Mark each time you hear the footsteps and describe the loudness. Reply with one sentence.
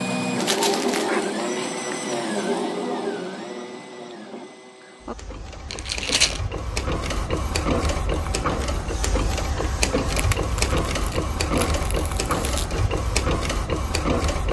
The footsteps can't be heard in this clip.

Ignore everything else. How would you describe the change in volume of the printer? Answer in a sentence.
The loudness of the printer goes down, then up.